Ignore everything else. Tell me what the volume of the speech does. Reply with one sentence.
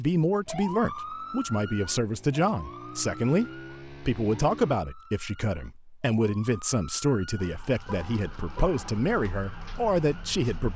The loudness of the speech stays about the same.